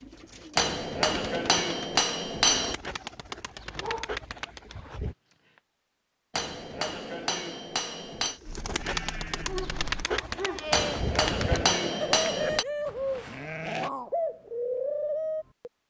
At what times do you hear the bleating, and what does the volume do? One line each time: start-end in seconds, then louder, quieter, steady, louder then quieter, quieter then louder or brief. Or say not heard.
8.4-13.9 louder then quieter.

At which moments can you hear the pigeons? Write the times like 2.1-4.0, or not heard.
0.0-5.2, 8.2-15.7.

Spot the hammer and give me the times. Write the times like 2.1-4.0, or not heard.
0.6-2.8, 6.3-8.4, 10.7-12.7.